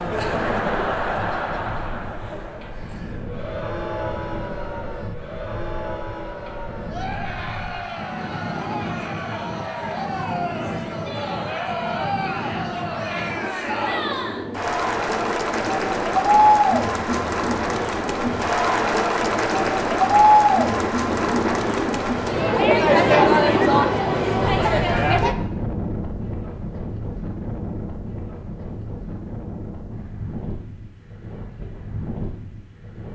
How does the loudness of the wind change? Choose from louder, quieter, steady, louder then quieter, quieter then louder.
louder then quieter.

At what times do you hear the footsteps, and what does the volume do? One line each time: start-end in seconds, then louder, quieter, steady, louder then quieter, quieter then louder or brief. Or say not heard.
not heard.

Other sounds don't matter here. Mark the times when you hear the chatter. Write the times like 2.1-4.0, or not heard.
0.0-25.4.